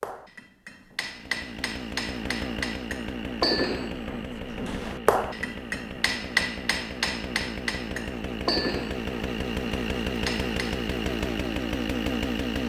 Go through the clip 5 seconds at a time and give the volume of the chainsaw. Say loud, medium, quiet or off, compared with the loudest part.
medium, medium, loud.